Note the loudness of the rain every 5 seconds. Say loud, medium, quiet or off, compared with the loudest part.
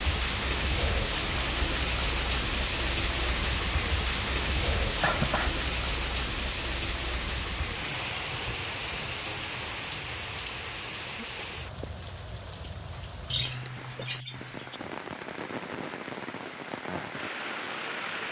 loud, loud, medium, medium.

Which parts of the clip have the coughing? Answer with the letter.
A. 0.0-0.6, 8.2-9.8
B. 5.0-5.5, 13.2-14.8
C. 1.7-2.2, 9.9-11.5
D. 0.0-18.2
B.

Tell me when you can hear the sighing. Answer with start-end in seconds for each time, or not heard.
not heard.